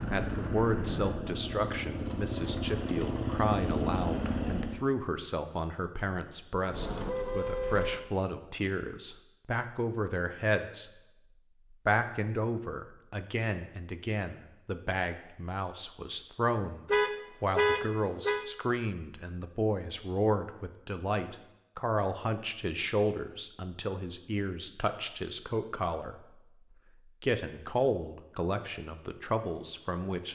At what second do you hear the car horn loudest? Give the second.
18 s.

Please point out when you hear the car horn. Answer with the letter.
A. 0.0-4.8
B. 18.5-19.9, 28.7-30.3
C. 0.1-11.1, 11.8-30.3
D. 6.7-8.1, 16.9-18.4
D.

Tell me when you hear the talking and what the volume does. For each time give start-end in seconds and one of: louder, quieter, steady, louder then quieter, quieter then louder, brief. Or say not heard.
0.1-11.1 steady
11.8-30.3 steady.